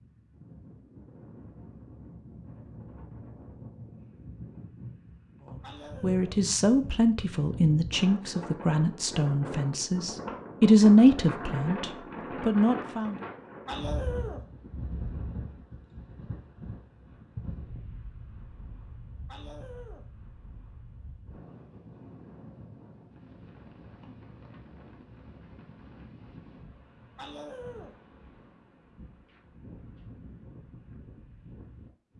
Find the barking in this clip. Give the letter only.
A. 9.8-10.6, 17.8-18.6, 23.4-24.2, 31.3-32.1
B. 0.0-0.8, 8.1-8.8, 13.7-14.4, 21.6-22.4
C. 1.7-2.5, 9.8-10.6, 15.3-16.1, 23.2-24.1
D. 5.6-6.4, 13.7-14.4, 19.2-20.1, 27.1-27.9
D.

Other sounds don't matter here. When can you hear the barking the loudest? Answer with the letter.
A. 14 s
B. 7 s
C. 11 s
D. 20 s
A.